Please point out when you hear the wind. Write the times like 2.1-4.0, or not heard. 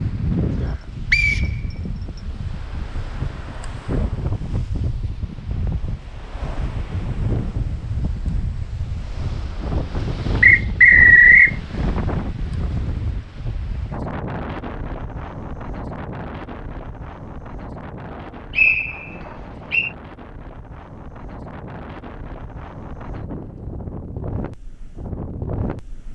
0.0-26.1.